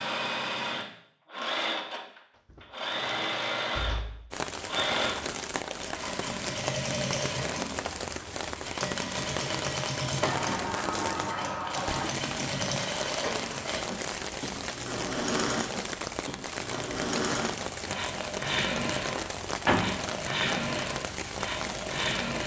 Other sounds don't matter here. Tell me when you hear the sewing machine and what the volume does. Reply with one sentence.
The sewing machine can be heard from 0.0 to 22.4 s, at a steady volume.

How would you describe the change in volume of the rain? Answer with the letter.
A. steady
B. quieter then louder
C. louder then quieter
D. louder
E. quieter
A.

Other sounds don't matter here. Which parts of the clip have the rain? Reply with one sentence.
The rain can be heard from 4.3 to 22.4 s.